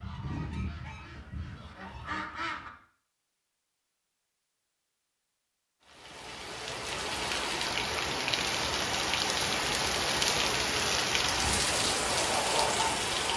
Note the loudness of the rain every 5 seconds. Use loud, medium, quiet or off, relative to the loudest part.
off, loud, loud.